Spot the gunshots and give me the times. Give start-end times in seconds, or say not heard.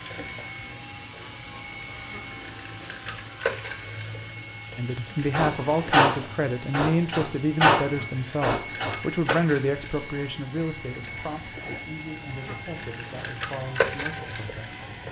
5.3-9.3.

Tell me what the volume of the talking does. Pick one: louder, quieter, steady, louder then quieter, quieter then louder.
quieter.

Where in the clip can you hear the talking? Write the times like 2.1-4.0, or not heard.
4.8-14.8.